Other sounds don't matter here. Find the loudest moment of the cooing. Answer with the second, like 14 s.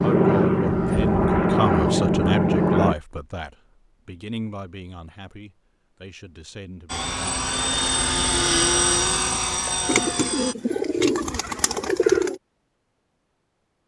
12 s.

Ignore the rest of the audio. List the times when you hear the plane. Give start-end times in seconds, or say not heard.
0.0-3.0, 6.8-10.6.